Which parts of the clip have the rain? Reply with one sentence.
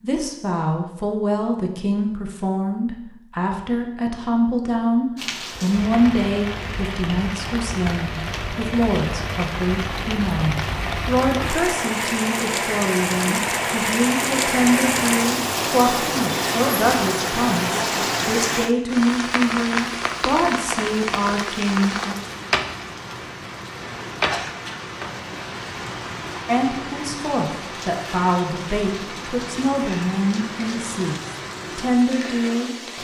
The rain can be heard from 5.2 to 32.9 s.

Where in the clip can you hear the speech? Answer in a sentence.
The speech can be heard from 0.0 to 22.1 s and from 26.4 to 32.9 s.